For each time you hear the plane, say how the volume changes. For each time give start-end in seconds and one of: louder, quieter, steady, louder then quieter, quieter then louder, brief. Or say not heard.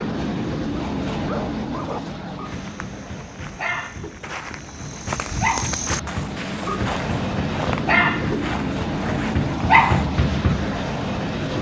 0.0-11.5 quieter then louder.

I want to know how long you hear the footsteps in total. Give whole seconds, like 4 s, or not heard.
8 s.